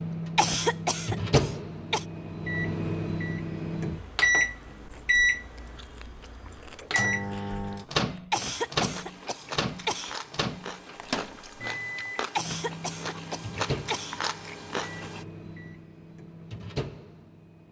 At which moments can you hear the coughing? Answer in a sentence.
The coughing can be heard from 0.3 to 2.0 s, from 8.3 to 10.2 s and from 12.3 to 14.2 s.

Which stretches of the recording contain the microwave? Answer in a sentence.
You can hear the microwave from 0.0 to 17.6 s.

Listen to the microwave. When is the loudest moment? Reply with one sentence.
The volume of the microwave peaks at 5 seconds.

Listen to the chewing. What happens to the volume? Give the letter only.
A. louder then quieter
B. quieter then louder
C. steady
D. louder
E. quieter
D.